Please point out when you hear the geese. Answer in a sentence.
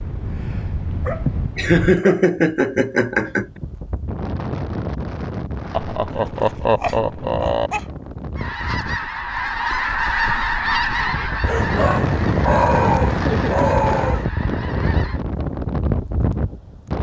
The geese can be heard from 8.3 to 15.2 s.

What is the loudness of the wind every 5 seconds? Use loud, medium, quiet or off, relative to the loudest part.
medium, medium, loud, loud.